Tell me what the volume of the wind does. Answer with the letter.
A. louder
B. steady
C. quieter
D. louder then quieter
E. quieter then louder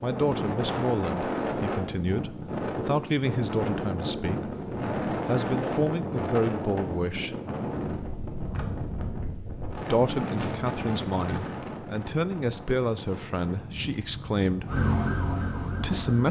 C.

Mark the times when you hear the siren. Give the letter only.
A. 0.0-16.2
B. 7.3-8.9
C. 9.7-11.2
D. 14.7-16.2
D.